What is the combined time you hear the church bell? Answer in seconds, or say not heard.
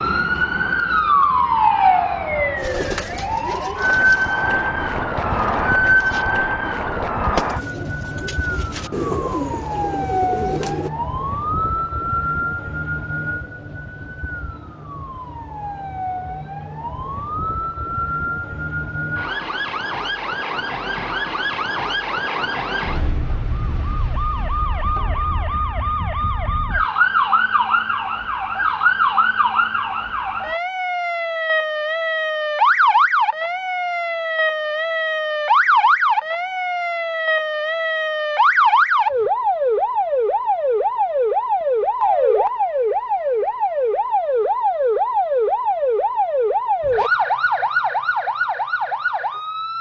not heard.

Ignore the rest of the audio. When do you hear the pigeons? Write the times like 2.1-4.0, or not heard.
2.5-10.9.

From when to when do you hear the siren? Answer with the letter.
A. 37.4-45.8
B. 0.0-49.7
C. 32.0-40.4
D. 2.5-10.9
B.